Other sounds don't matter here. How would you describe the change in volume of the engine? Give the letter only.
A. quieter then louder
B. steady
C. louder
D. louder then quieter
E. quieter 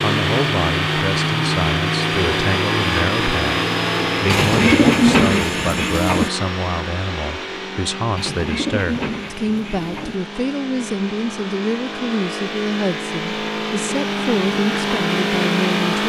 A.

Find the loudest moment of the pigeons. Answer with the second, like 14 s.
5 s.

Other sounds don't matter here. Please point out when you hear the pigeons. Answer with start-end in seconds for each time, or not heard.
4.2-6.3, 8.2-10.2.